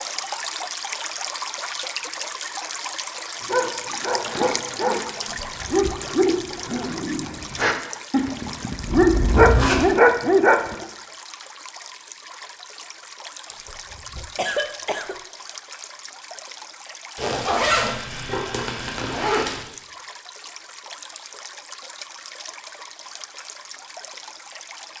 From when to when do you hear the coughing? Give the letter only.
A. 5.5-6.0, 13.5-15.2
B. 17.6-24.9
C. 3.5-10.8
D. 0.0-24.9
A.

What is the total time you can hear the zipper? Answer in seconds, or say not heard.
4 s.